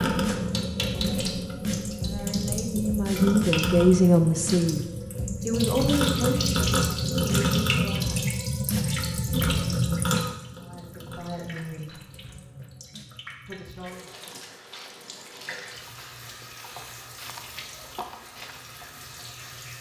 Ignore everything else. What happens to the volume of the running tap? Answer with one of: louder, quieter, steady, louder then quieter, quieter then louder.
quieter.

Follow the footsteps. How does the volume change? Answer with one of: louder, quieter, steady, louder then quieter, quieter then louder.
louder.